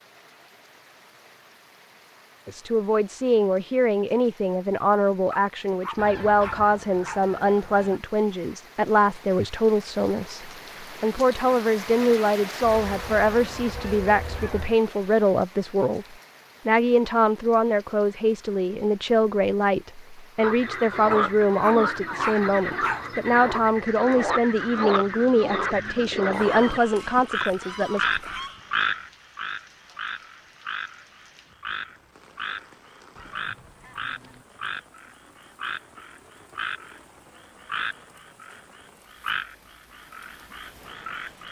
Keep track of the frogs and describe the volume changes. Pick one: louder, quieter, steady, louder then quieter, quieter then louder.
quieter.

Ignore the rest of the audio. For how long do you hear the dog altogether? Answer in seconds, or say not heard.
4 s.